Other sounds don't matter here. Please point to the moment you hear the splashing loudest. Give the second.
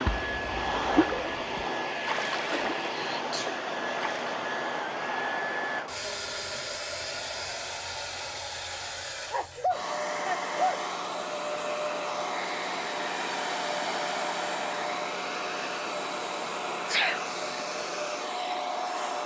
1 s.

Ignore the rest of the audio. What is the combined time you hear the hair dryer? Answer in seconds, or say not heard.
19 s.